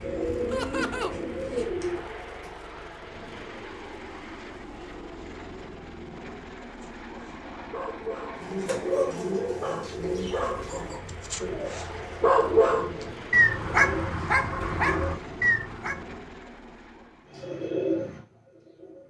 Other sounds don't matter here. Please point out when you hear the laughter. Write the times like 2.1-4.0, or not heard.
0.5-1.1.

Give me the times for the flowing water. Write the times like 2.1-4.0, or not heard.
not heard.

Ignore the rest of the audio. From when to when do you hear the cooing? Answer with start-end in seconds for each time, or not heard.
0.0-2.5, 8.3-15.5, 17.3-19.0.